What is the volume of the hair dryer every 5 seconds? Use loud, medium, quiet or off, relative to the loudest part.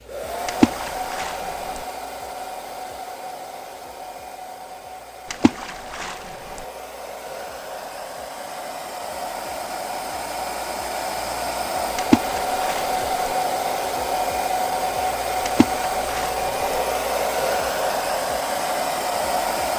medium, medium, loud, loud.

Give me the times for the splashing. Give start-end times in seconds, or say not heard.
0.5-1.8, 5.3-6.7, 11.9-13.3, 15.4-16.8.